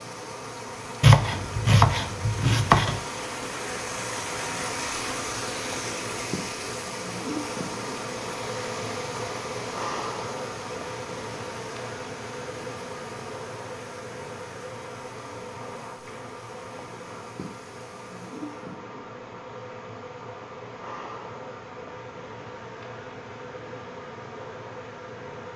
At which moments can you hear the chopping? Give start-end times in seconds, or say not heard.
1.0-3.0.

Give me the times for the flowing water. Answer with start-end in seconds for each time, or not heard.
0.0-18.6.